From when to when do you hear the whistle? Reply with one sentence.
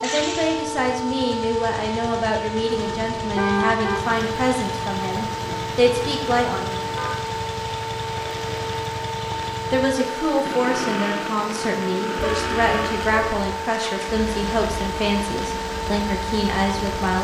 You can't hear the whistle here.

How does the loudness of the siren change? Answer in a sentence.
The loudness of the siren stays about the same.